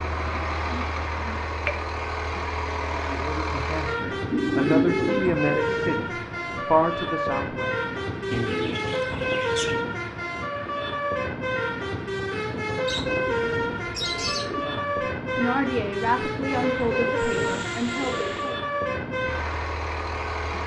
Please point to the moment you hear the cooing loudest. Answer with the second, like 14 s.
5 s.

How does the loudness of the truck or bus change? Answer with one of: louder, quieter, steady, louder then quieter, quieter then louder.
steady.